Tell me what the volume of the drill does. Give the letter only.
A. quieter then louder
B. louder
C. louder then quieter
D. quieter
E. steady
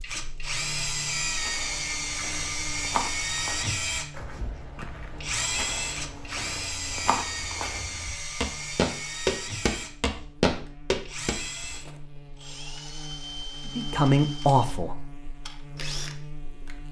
D.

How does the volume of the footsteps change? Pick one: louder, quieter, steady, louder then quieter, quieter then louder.
quieter then louder.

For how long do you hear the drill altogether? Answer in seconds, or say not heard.
17 s.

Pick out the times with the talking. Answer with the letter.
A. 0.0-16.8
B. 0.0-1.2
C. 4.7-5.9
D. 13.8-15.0
D.